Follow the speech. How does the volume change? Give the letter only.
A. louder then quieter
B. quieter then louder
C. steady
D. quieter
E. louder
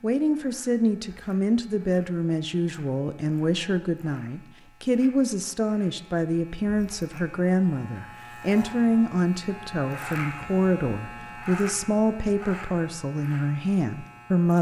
C.